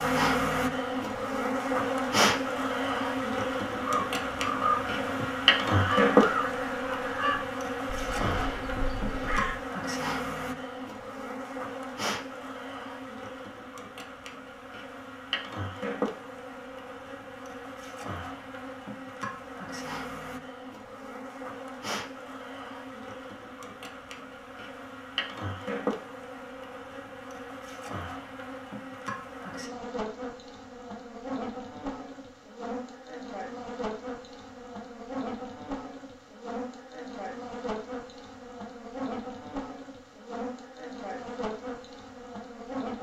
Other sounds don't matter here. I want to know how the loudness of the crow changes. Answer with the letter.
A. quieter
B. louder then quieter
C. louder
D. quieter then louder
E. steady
A.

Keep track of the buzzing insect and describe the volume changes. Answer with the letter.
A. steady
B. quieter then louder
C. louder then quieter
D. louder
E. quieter
E.